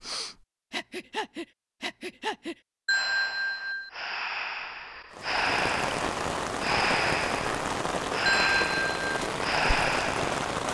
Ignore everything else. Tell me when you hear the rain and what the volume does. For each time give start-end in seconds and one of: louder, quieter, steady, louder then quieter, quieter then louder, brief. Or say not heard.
5.1-10.7 steady.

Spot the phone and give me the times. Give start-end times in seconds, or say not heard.
2.9-3.9, 8.2-9.2.